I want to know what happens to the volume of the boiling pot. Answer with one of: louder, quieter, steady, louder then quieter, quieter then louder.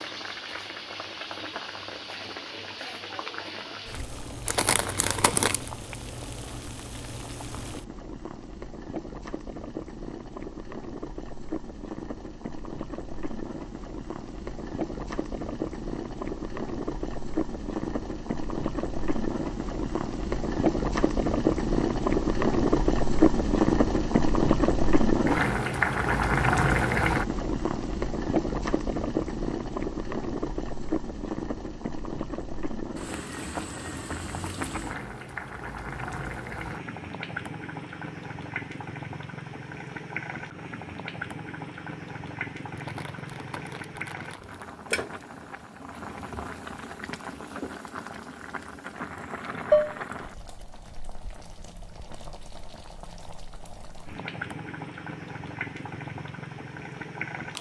louder then quieter.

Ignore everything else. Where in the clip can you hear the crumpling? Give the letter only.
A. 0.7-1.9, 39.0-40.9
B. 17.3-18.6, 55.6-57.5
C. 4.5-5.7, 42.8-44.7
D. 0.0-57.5
C.